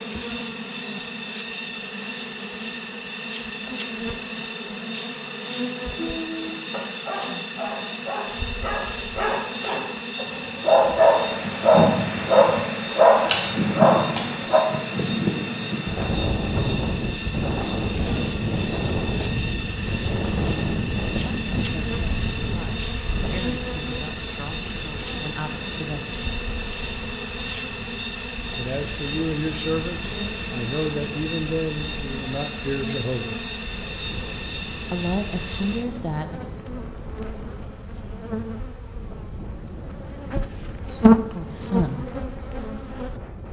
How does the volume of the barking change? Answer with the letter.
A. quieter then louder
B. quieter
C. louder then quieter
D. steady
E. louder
E.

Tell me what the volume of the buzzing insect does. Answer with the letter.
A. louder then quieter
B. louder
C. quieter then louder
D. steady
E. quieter
D.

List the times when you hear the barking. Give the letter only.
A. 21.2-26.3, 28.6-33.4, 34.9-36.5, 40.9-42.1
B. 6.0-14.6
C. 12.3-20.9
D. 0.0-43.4
B.